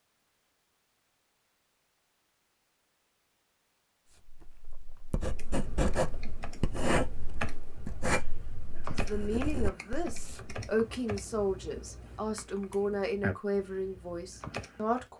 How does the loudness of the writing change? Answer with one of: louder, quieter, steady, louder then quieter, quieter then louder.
louder then quieter.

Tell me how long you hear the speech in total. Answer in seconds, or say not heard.
6 s.